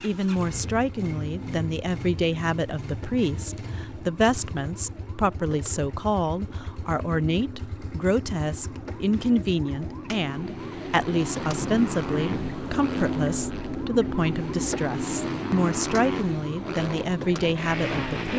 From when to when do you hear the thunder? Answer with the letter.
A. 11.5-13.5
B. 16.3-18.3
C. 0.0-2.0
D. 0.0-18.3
A.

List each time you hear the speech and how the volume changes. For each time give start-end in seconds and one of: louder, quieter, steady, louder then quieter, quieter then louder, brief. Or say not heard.
0.0-18.3 steady.